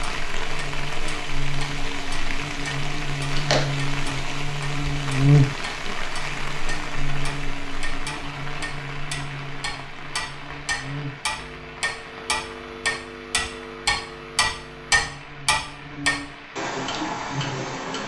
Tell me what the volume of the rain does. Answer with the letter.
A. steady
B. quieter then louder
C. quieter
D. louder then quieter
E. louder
C.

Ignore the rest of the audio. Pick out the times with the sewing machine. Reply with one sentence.
You can't hear the sewing machine here.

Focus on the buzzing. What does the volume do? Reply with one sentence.
The loudness of the buzzing goes up, then down.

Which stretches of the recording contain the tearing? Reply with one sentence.
You can hear the tearing from 3.4 to 4.4 s.